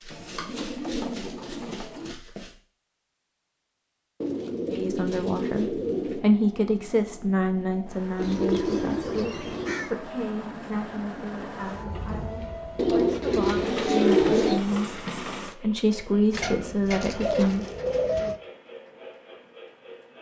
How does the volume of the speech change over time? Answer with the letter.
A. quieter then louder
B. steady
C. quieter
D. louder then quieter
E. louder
A.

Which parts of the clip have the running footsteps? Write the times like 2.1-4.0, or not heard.
0.0-2.5.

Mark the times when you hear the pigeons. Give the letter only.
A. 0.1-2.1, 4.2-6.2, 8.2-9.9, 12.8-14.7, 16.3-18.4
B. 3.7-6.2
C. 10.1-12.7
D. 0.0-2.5
A.